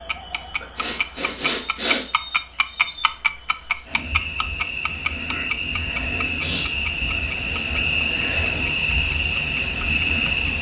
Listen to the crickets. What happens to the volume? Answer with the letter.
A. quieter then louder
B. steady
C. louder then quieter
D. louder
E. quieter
D.